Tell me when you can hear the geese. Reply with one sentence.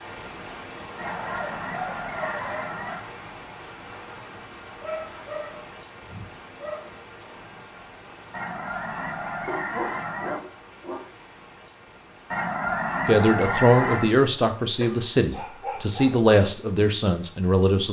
You can hear the geese from 0.9 to 3.0 s, from 8.3 to 10.3 s and from 12.3 to 14.1 s.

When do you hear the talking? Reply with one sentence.
You can hear the talking from 13.1 to 17.8 s.